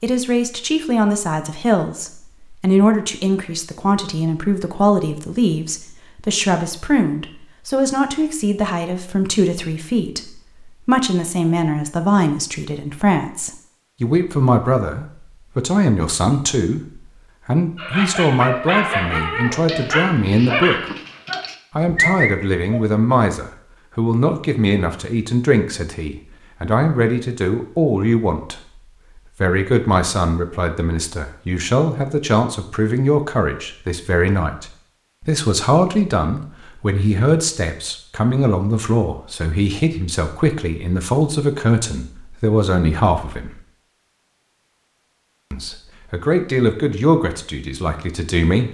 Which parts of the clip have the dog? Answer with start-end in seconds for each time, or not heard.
17.8-22.9.